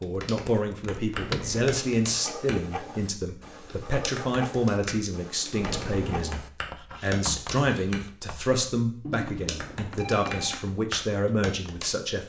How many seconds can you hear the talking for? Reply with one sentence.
The talking can be heard for 12 seconds in total.